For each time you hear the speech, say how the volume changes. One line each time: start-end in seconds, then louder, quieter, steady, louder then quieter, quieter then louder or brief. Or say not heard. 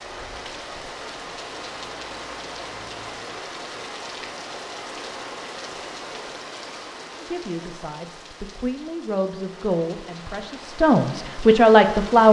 7.2-12.2 louder.